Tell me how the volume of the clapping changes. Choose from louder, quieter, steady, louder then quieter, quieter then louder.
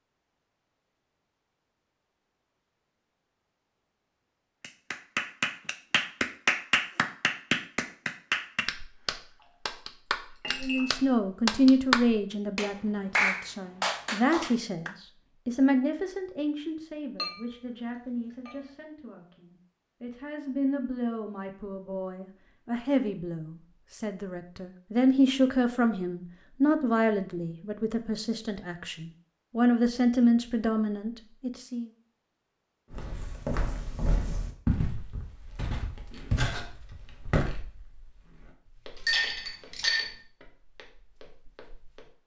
quieter then louder.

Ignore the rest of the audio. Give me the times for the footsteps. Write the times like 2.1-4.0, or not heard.
32.9-42.1.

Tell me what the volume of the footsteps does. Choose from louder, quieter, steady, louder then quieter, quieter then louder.
quieter.